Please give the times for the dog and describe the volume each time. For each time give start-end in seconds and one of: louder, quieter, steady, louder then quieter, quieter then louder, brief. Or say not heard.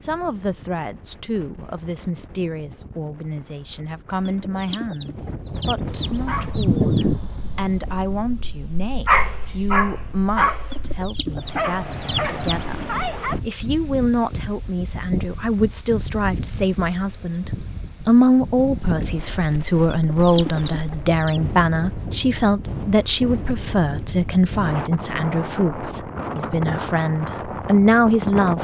6.1-13.4 louder then quieter.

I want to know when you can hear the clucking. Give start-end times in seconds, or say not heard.
4.2-7.2, 10.7-12.8, 19.9-21.4.